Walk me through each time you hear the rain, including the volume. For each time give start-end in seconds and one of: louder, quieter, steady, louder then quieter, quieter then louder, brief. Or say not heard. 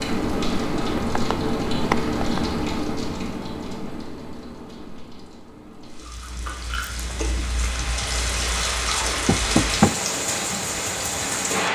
0.0-11.6 quieter then louder.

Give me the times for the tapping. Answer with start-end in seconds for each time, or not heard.
0.9-2.4, 9.2-9.9.